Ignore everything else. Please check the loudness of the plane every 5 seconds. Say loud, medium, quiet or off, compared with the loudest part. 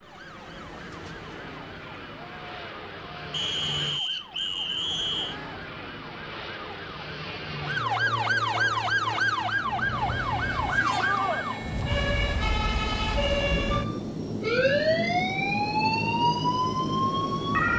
medium, medium, loud, loud.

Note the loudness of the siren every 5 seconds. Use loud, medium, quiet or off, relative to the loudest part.
quiet, loud, loud, loud.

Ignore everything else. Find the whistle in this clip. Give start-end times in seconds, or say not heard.
3.3-5.4.